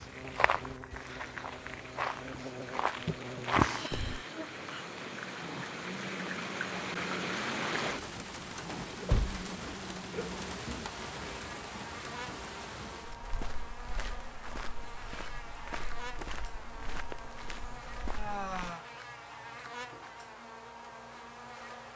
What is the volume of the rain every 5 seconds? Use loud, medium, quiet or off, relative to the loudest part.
medium, loud, medium, off, off.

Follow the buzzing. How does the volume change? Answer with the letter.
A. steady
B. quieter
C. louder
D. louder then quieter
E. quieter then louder
A.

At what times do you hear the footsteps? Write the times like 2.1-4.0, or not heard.
0.0-4.2, 13.1-18.8.